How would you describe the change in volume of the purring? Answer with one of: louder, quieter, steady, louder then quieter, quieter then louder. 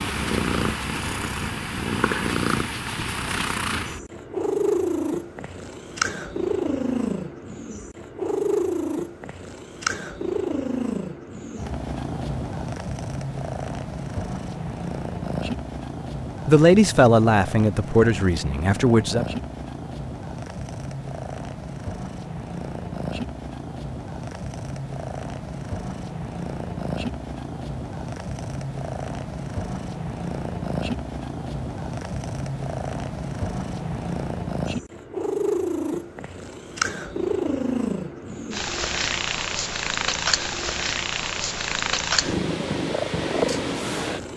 quieter then louder.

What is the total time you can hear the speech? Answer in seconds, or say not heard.
3 s.